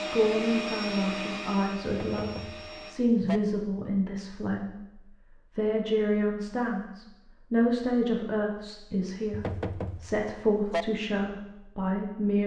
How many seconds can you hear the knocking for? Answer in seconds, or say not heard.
3 s.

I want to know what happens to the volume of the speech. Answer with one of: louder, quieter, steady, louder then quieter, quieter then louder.
steady.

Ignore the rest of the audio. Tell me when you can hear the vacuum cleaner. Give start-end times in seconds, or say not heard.
0.0-3.0.